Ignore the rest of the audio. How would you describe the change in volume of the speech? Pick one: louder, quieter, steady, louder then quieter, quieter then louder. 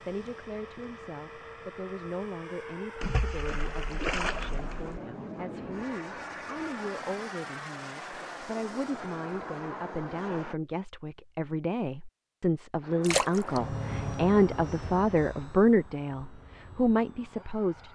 louder.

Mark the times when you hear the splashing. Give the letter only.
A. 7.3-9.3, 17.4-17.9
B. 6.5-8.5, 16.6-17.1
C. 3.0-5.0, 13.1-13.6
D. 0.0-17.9
C.